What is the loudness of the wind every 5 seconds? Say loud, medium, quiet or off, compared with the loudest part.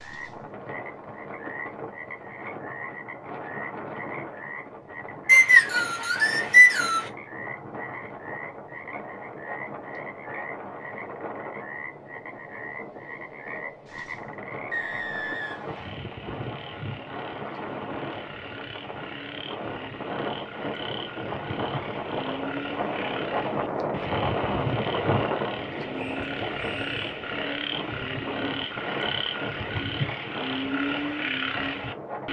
medium, medium, medium, medium, loud, loud, medium.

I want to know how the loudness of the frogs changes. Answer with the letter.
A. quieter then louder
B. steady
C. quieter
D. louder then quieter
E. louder
E.